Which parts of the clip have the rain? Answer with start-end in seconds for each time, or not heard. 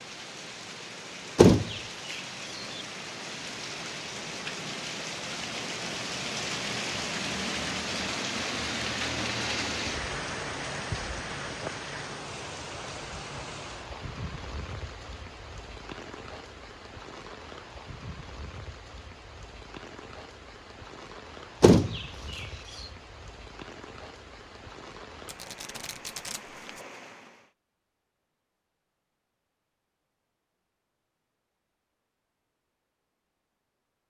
0.0-27.5.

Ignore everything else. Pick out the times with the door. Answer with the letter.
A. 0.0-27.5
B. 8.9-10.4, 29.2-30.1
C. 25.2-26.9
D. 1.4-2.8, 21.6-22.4
D.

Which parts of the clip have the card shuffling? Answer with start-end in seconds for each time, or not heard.
25.2-26.9.